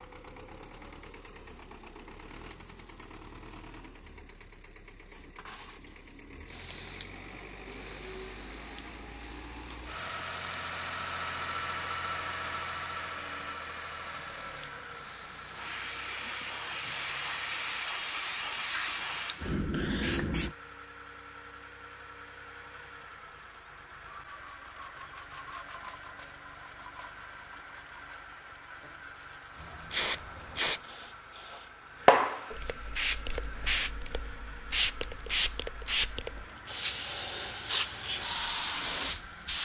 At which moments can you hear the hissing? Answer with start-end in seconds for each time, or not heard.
6.5-20.6, 29.6-39.5.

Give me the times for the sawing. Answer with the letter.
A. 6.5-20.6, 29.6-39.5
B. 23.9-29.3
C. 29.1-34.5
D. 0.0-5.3
B.